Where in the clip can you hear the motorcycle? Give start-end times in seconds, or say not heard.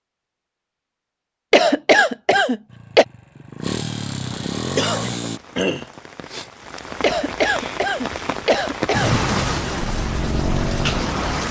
2.6-5.4, 9.2-11.4.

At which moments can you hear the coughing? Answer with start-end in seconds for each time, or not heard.
1.5-3.0, 7.0-9.2.